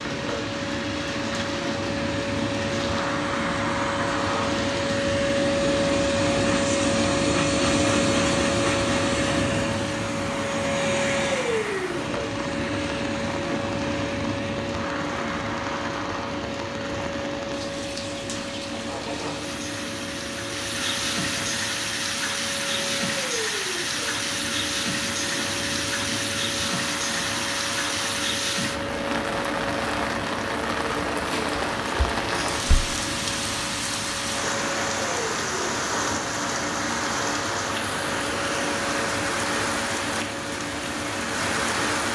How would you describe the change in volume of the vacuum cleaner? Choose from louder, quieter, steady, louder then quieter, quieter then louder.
quieter.